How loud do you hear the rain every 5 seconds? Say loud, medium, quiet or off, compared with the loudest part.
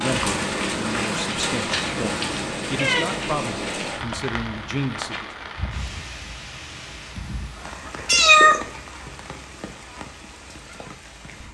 loud, medium, quiet.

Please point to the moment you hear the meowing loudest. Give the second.
8 s.